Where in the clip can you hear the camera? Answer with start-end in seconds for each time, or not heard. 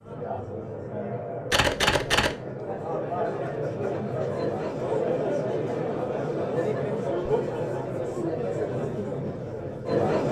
1.5-2.4.